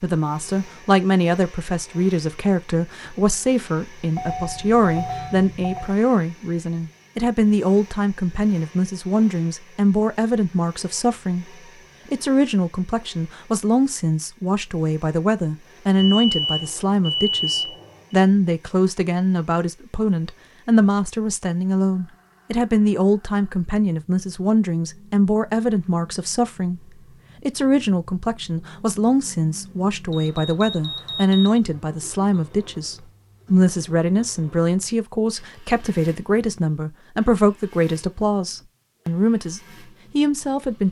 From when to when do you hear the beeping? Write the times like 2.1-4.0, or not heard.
4.2-6.0, 15.9-18.1, 30.1-31.6.